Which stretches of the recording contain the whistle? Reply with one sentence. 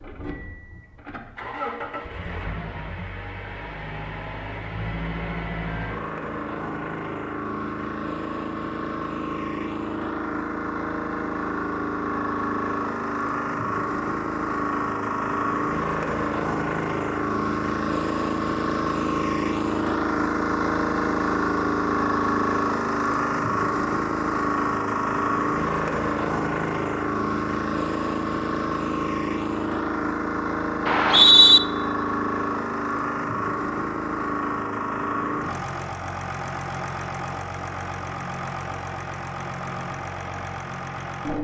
You can hear the whistle from 30.9 to 31.6 s.